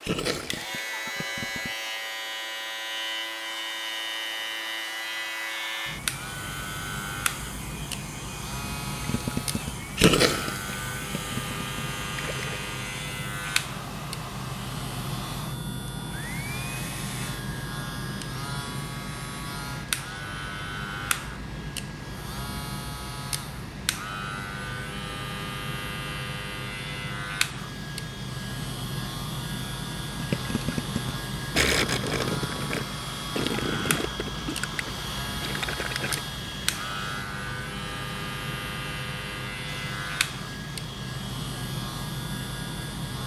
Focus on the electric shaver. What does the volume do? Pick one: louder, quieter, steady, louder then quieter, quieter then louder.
steady.